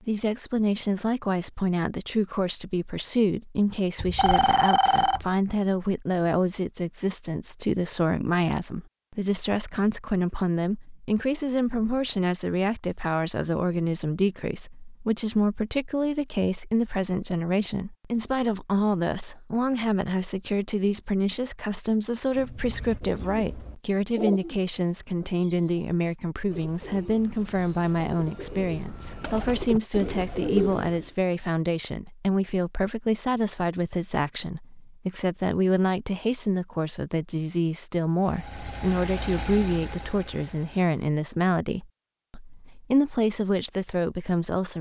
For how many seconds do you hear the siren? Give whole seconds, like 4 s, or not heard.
not heard.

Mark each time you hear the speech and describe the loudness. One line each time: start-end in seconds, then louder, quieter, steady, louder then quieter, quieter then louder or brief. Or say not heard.
0.1-44.7 steady.